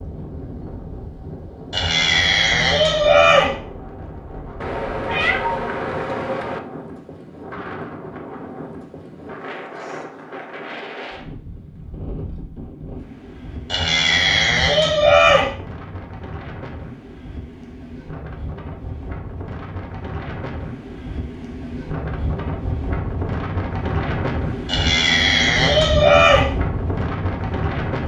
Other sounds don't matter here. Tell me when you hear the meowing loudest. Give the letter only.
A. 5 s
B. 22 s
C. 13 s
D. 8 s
A.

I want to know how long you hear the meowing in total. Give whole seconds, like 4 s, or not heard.
2 s.